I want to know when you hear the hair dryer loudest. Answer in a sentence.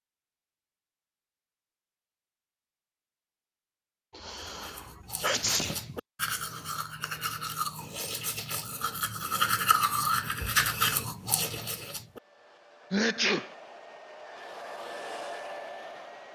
The loudest moment of the hair dryer is at 15 seconds.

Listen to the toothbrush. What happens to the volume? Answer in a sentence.
The loudness of the toothbrush goes up.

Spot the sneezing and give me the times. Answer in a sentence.
The sneezing can be heard from 4.1 to 6.0 s and from 12.9 to 13.6 s.